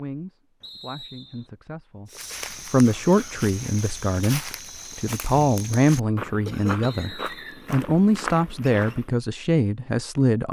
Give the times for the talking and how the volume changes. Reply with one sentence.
You can hear the talking from 0.0 to 10.4 s, getting louder.